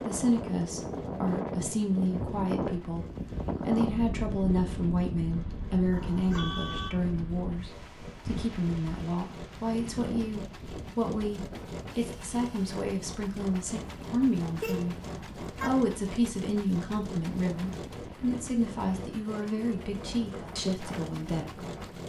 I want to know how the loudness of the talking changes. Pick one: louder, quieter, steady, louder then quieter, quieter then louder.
steady.